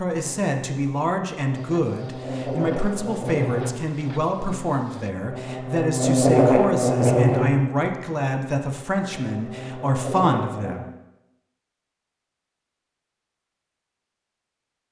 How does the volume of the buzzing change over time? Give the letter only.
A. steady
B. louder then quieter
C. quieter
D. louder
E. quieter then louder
B.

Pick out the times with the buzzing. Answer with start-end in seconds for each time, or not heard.
0.0-10.8.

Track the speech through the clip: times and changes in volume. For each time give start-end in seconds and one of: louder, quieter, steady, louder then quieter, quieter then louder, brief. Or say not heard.
0.0-10.9 steady.